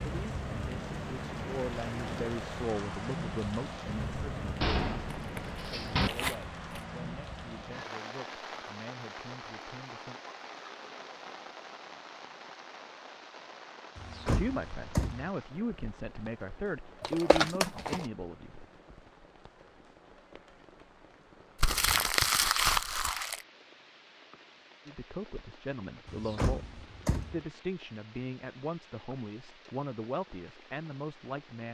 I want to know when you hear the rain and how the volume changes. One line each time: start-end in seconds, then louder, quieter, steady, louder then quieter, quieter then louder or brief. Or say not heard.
0.0-31.7 quieter.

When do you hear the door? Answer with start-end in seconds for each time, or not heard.
4.6-6.1, 13.9-15.3, 26.1-27.4.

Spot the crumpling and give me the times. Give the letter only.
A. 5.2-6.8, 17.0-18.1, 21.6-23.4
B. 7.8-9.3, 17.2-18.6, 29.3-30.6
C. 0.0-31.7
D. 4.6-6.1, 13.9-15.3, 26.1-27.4
A.